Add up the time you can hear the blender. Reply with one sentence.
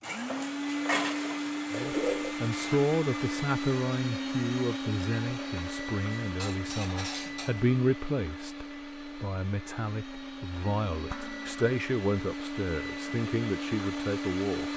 You can hear the blender for 15 seconds altogether.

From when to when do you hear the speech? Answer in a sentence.
You can hear the speech from 1.7 to 14.7 s.